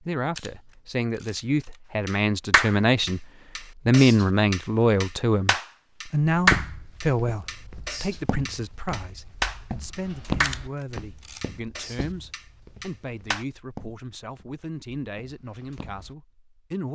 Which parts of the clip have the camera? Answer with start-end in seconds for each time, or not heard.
0.3-1.8, 10.4-11.4.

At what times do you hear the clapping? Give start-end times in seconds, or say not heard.
2.0-13.4.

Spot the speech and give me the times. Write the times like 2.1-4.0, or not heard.
0.0-3.2, 3.9-16.9.